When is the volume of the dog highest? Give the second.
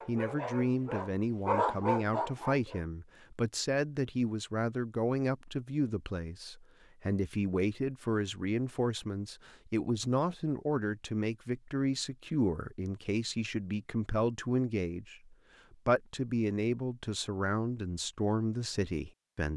2 s.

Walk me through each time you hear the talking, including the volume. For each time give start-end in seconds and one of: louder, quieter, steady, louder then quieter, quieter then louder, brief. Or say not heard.
0.1-19.5 steady.